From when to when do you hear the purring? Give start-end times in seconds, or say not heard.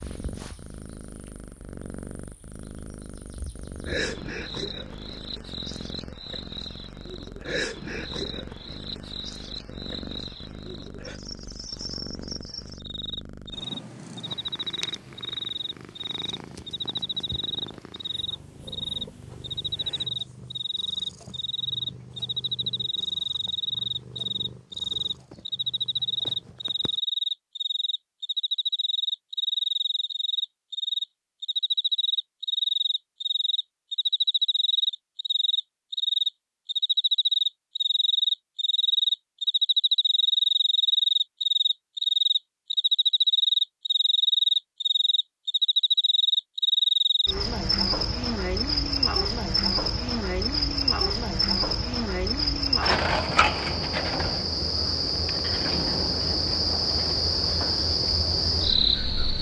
0.0-27.0.